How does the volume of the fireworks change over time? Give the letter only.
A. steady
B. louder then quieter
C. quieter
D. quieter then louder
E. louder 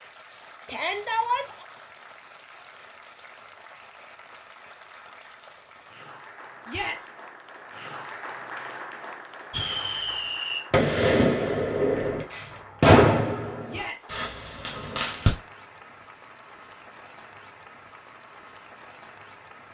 B.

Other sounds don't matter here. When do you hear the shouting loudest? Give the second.
1 s.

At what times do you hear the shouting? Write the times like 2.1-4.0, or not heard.
0.7-1.6, 6.7-7.2, 13.7-14.2.